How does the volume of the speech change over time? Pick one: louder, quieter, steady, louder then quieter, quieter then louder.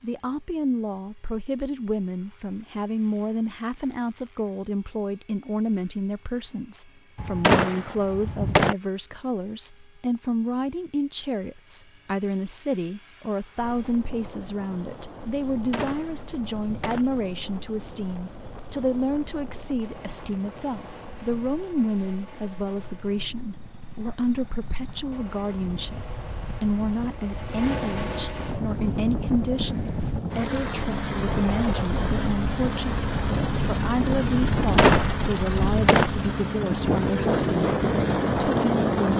steady.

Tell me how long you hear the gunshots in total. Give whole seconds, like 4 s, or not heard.
5 s.